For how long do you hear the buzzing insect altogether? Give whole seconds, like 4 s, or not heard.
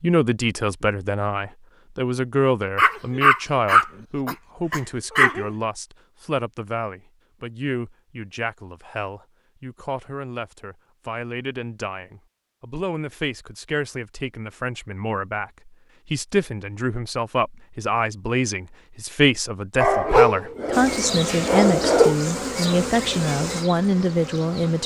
4 s.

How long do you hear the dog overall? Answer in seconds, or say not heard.
5 s.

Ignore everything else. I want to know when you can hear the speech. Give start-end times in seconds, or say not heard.
0.0-24.8.